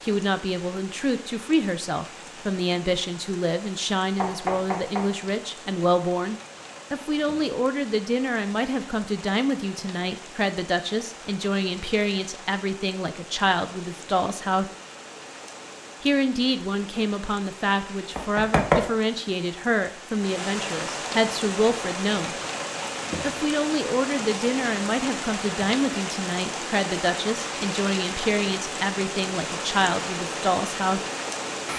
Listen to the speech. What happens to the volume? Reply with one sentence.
The loudness of the speech stays about the same.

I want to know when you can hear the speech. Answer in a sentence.
You can hear the speech from 0.0 to 14.7 s, from 16.0 to 22.4 s and from 23.2 to 31.0 s.